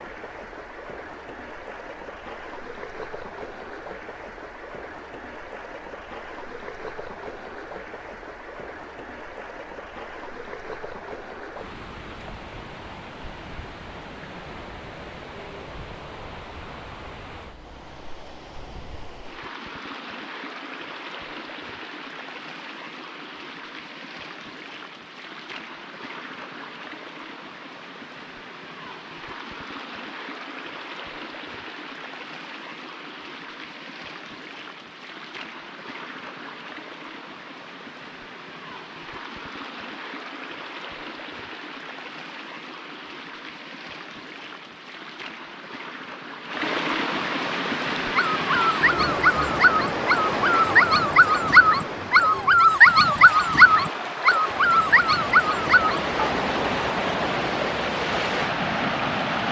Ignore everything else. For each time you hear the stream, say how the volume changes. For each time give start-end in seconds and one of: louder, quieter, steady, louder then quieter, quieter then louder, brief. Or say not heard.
0.0-59.4 louder.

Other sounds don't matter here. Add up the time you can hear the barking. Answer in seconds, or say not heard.
8 s.